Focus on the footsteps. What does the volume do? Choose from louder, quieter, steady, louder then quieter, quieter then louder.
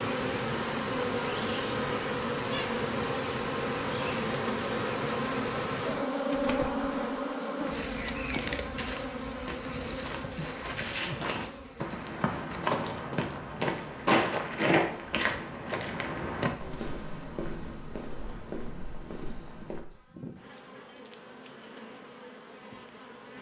louder then quieter.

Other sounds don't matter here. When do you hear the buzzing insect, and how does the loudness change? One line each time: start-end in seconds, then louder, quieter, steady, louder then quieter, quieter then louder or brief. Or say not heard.
0.0-23.3 quieter.